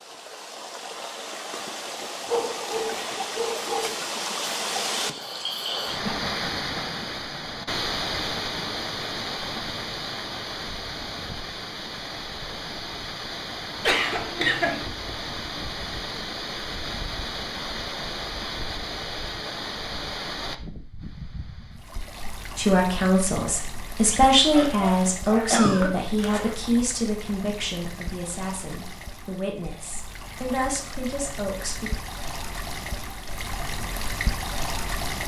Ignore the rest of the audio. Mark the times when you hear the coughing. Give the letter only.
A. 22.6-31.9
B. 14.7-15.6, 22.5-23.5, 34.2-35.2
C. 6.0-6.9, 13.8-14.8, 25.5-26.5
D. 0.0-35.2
C.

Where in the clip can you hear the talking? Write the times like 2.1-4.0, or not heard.
22.6-31.9.